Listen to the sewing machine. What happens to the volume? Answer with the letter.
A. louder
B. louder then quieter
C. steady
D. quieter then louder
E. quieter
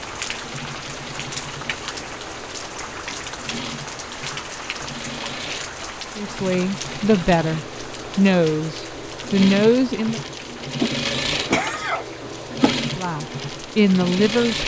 A.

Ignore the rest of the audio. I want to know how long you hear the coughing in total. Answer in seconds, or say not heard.
2 s.